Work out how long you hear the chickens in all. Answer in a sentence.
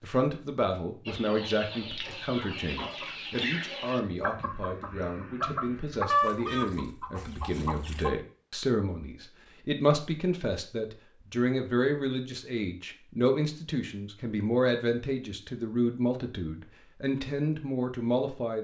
You can hear the chickens for 7 seconds altogether.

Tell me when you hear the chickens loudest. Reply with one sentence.
The volume of the chickens peaks at 6 seconds.